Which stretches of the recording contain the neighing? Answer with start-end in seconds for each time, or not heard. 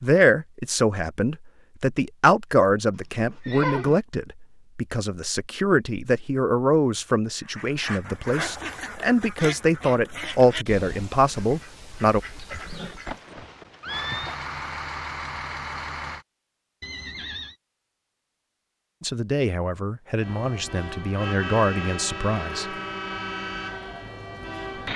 3.2-4.0, 12.5-14.4, 16.8-17.6.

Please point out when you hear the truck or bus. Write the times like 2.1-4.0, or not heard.
13.8-16.2, 20.2-24.9.